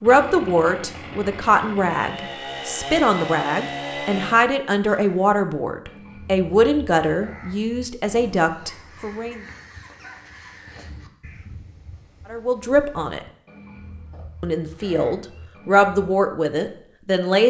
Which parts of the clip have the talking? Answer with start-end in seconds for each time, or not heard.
0.0-9.4, 12.3-13.2, 14.4-17.4.